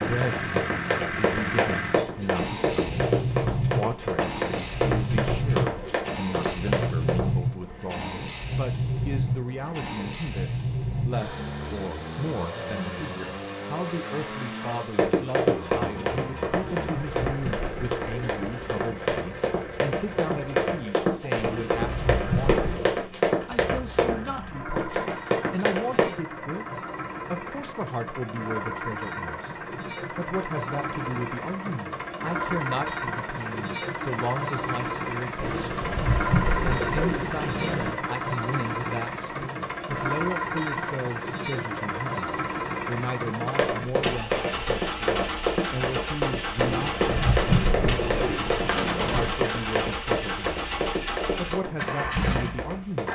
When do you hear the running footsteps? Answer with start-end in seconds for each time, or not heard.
0.0-7.3, 14.9-26.1, 43.4-53.1.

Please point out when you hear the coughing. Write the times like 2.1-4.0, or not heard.
not heard.